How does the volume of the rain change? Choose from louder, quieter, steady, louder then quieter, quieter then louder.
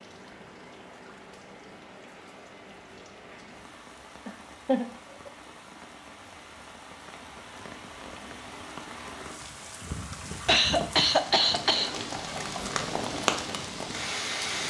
louder.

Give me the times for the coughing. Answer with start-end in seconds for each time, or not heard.
4.2-5.3, 9.4-11.9.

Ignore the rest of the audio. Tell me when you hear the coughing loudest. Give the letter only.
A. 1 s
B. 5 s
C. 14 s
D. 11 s
D.